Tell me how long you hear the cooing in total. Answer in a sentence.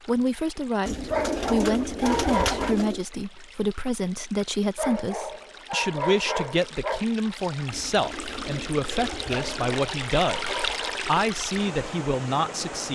You can hear the cooing for 4 seconds altogether.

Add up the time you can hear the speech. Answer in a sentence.
You can hear the speech for 13 seconds altogether.